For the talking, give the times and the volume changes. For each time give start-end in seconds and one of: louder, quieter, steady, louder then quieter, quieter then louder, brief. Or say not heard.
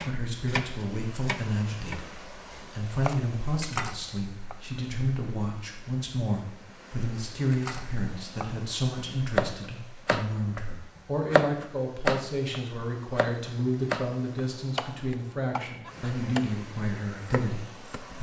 0.0-18.1 steady.